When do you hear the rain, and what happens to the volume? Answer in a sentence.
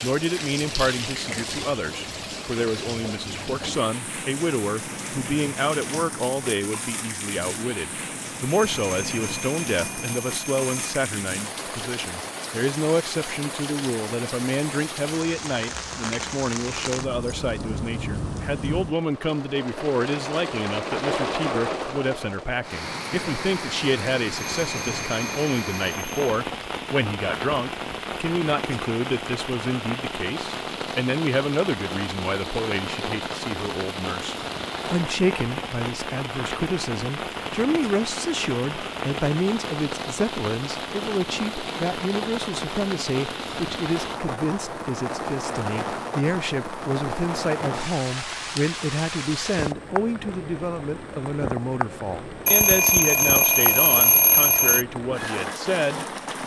The rain can be heard from 0.0 to 56.4 s, at a steady volume.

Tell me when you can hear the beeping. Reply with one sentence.
You can hear the beeping from 8.4 to 10.9 s, from 24.4 to 26.2 s and from 52.5 to 54.9 s.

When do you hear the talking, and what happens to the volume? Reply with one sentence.
You can hear the talking from 0.0 to 56.0 s, at a steady volume.